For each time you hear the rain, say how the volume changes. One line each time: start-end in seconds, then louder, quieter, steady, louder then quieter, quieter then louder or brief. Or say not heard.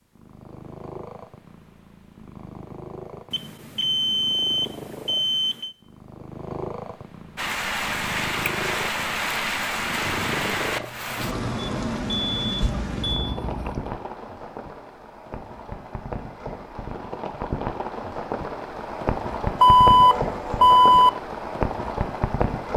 7.3-22.7 quieter then louder.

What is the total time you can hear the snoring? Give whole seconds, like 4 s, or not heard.
2 s.